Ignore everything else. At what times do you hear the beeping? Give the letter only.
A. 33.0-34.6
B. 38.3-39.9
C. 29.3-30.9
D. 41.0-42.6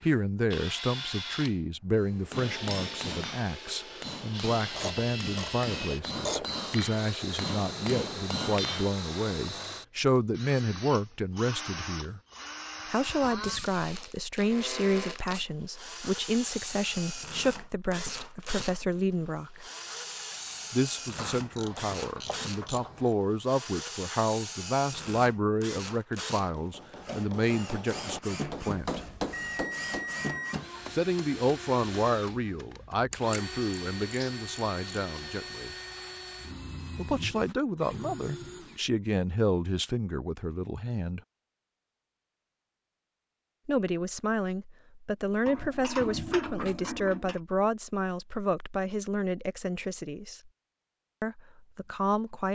C.